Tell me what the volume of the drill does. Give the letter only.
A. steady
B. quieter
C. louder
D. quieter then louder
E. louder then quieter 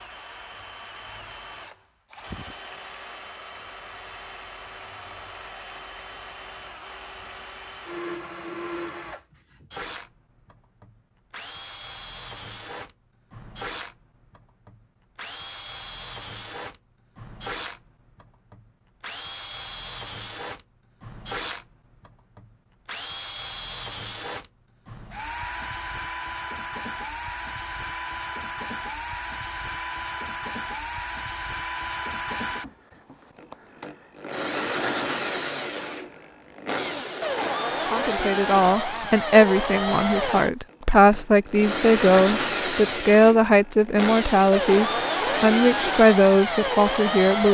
C.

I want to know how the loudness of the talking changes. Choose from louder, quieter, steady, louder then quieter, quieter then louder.
steady.